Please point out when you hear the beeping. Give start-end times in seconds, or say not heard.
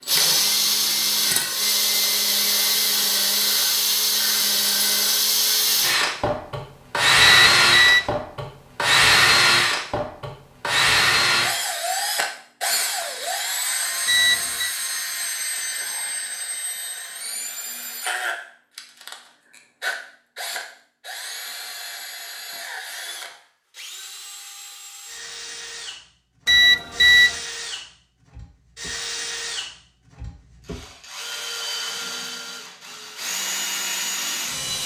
7.2-8.1, 14.1-14.8, 26.4-27.4.